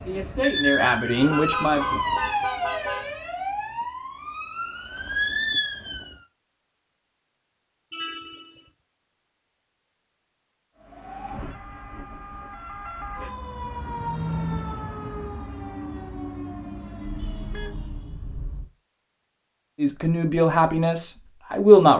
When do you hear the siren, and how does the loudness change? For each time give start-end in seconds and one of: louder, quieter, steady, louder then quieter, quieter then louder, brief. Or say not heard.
0.0-6.2 quieter then louder
10.8-18.2 louder then quieter.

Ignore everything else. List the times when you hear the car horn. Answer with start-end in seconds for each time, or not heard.
1.1-3.1, 7.9-8.6, 17.0-18.7.